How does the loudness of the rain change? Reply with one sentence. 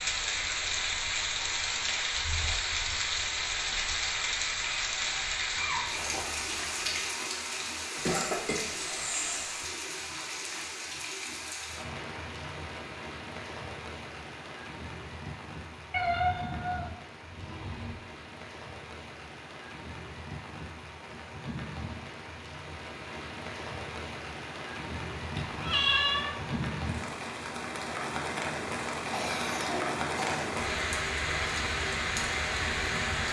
The volume of the rain goes down, then up.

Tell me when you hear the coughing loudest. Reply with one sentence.
The loudest moment of the coughing is at 8 seconds.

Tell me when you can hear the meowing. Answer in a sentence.
You can hear the meowing from 5.5 to 7.0 s, from 15.9 to 17.9 s and from 25.4 to 26.6 s.